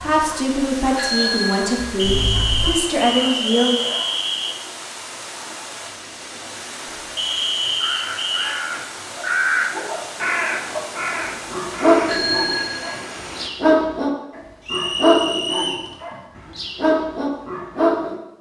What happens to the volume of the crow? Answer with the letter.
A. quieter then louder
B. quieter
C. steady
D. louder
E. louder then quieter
E.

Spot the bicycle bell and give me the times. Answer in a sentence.
You can hear the bicycle bell from 0.9 to 2.8 s and from 12.1 to 13.0 s.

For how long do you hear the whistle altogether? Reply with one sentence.
You can hear the whistle for 5 seconds altogether.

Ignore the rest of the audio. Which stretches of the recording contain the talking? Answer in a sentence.
You can hear the talking from 0.0 to 3.7 s.